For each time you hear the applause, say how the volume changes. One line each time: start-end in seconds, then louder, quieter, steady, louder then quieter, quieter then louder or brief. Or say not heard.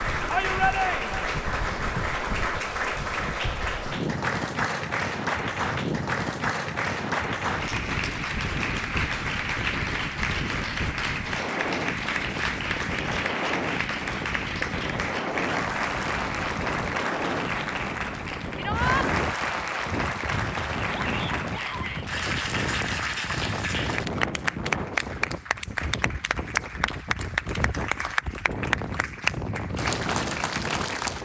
0.0-31.2 steady.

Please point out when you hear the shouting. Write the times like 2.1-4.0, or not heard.
0.3-1.2, 18.6-19.1, 20.9-22.1.